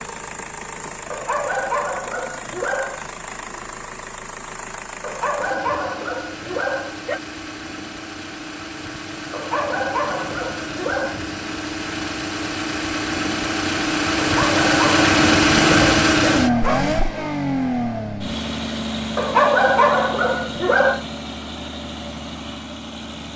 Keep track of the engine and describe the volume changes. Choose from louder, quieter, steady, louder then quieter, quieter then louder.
louder then quieter.